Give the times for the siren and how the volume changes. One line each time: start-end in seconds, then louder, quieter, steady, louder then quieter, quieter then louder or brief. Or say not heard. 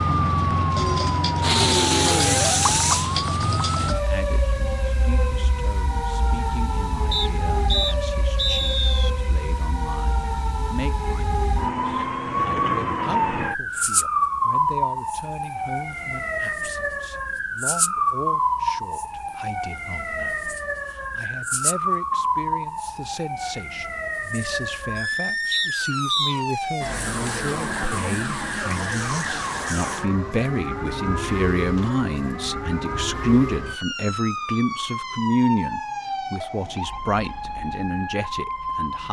0.0-39.0 quieter.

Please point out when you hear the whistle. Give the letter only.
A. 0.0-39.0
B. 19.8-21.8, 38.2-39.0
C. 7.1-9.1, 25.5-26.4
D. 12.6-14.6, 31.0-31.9
C.